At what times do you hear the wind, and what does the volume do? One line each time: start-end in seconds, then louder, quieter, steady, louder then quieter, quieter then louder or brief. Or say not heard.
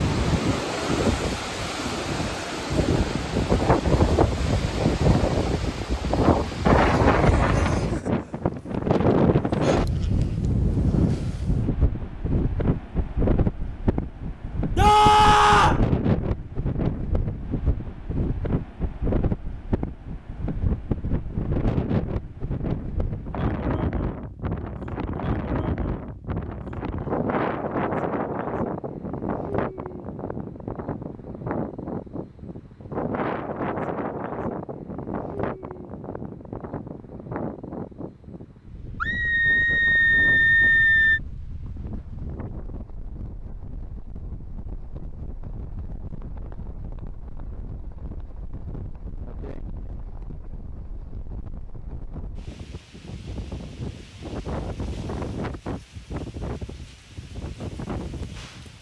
0.0-58.7 quieter.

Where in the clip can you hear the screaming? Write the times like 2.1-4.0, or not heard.
14.8-15.8, 39.0-41.2.